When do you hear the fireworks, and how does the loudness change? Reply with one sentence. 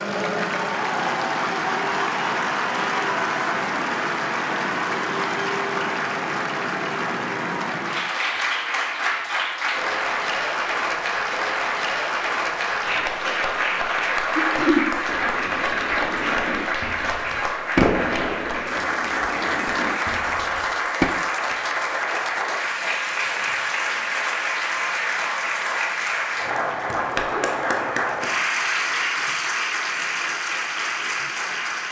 The fireworks can be heard from 15.1 to 21.1 s, getting louder then quieter.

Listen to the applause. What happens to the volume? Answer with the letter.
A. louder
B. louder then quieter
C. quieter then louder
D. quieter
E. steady
E.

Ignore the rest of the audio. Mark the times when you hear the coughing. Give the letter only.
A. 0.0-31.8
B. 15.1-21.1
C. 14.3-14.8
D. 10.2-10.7
C.